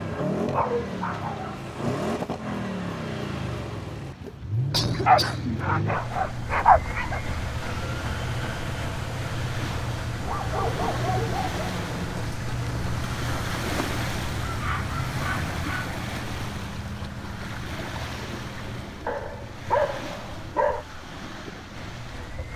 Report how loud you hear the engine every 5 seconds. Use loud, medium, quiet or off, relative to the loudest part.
loud, loud, loud, medium, quiet.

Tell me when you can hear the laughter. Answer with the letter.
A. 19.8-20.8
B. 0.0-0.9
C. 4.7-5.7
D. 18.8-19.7
C.